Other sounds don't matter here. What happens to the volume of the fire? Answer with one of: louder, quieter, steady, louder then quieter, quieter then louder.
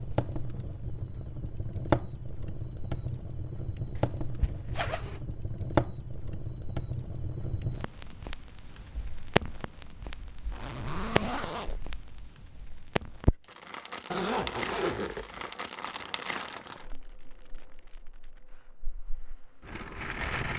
quieter.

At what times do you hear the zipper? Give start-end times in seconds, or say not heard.
4.0-5.2, 10.5-11.8, 14.1-15.5.